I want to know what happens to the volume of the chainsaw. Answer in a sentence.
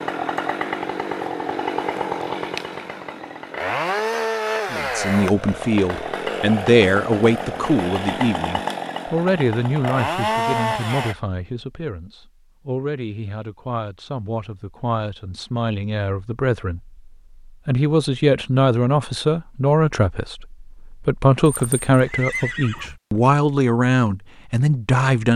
The volume of the chainsaw stays about the same.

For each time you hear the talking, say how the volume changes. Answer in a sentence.
You can hear the talking from 4.7 to 25.3 s, getting quieter then louder.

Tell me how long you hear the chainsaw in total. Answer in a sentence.
You can hear the chainsaw for 11 seconds altogether.